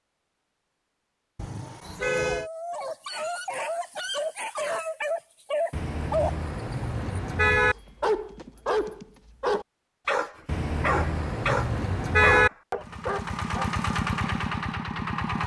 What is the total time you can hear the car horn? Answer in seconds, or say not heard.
5 s.